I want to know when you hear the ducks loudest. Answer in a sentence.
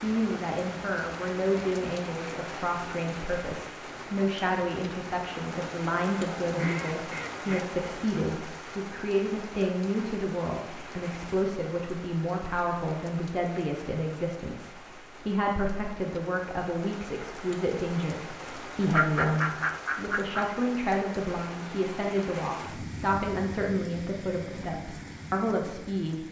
The volume of the ducks peaks at 19 seconds.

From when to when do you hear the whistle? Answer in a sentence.
The whistle can't be heard in this clip.